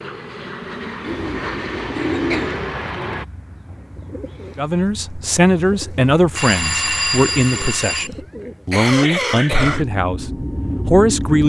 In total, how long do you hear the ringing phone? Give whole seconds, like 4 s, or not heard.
2 s.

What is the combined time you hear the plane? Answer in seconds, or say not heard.
5 s.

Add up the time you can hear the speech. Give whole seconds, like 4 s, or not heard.
7 s.